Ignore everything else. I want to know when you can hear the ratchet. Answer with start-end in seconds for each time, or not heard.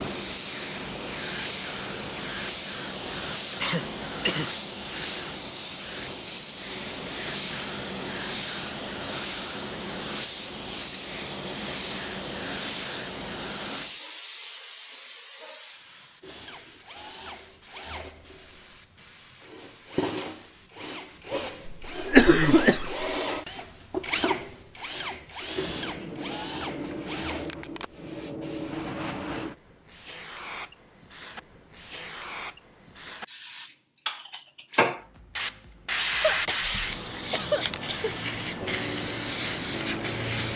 not heard.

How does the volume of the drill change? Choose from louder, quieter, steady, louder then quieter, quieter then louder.
louder.